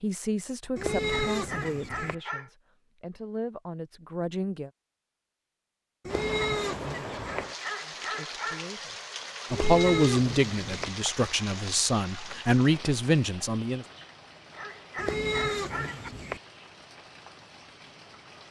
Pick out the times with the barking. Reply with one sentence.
The barking can be heard from 1.3 to 2.5 s, from 7.5 to 8.7 s and from 14.5 to 16.1 s.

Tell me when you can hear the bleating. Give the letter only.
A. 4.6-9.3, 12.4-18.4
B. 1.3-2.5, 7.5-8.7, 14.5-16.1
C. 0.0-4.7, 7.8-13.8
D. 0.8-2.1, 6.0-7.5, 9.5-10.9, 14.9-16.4
D.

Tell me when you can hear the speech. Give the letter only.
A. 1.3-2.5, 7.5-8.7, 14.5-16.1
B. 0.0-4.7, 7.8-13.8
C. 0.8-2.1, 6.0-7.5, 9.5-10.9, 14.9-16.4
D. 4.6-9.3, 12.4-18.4
B.